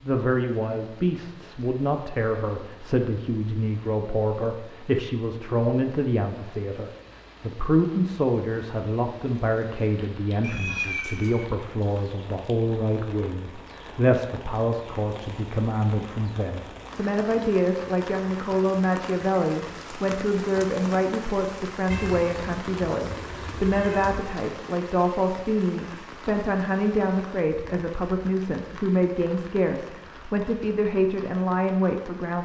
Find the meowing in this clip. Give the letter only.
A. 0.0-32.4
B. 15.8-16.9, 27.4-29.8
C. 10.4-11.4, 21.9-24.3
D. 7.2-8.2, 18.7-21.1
C.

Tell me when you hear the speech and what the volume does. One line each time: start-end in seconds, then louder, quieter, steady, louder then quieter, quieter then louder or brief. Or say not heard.
0.0-32.4 steady.